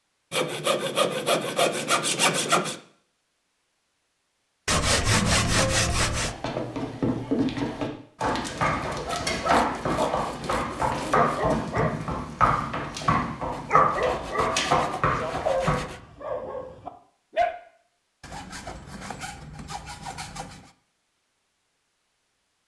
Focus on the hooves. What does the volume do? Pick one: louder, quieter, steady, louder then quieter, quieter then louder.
steady.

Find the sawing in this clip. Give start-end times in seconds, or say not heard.
0.3-2.8, 4.7-6.3, 9.1-11.6, 13.5-16.0, 18.2-20.7.